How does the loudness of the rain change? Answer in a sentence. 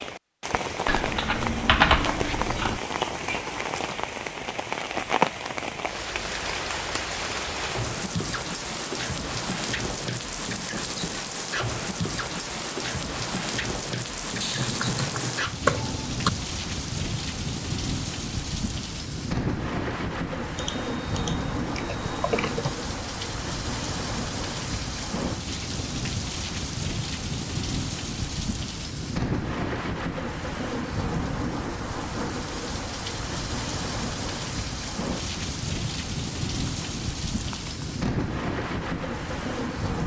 The loudness of the rain stays about the same.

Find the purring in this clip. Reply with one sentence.
You can't hear the purring here.